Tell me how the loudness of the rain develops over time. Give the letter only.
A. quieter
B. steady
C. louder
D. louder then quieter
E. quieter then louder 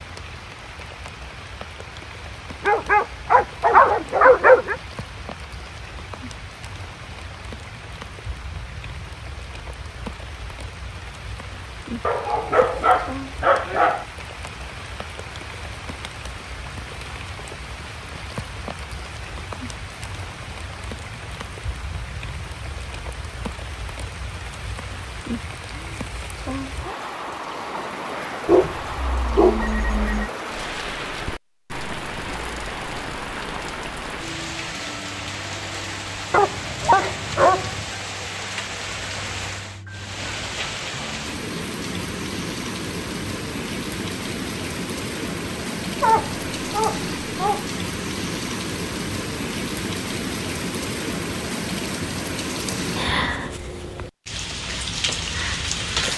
C.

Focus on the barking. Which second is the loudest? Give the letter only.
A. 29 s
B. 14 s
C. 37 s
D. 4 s
D.